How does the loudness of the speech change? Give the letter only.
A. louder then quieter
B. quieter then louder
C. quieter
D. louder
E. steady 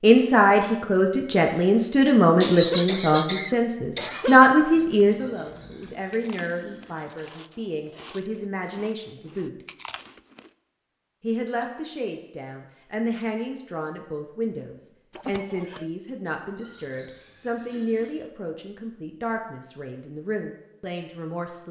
C.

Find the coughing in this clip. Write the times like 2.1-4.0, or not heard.
2.4-4.3, 15.2-15.8.